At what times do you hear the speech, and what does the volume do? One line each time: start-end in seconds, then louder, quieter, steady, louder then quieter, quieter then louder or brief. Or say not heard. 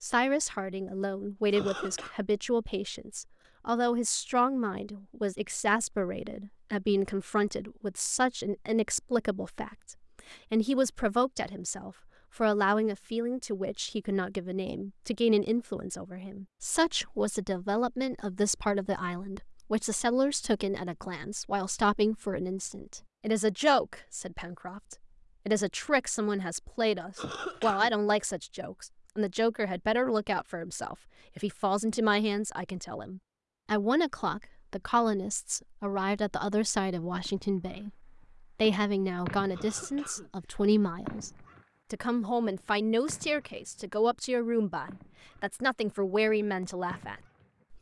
0.0-47.7 steady.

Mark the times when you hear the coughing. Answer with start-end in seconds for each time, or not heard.
1.5-2.1, 27.1-27.9, 39.5-40.6.